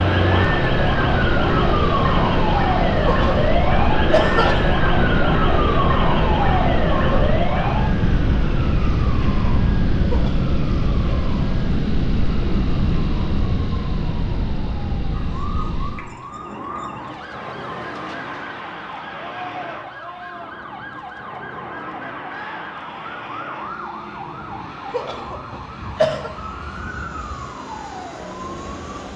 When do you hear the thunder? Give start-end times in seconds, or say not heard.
not heard.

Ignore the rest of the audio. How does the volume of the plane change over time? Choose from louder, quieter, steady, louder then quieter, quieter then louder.
quieter.